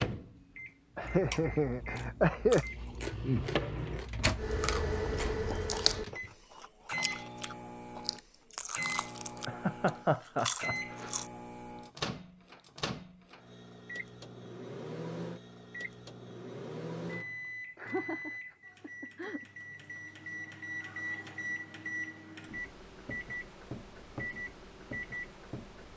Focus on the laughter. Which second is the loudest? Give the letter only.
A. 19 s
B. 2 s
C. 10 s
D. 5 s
B.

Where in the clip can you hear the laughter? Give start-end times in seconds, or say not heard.
0.9-2.6, 9.4-11.2, 17.8-19.4.